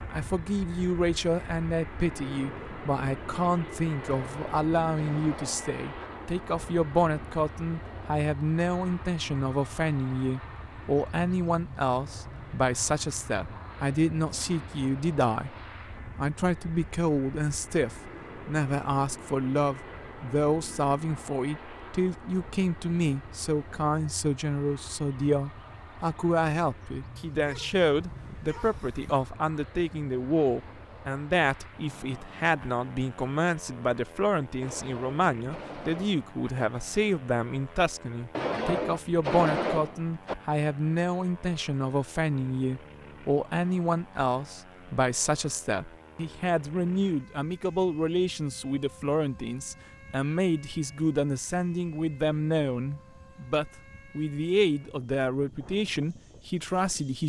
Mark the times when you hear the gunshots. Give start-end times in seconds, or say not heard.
4.0-6.1, 34.6-36.6, 38.3-40.4.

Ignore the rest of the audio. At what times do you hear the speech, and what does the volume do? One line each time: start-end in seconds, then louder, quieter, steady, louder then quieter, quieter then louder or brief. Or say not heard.
0.1-57.2 steady.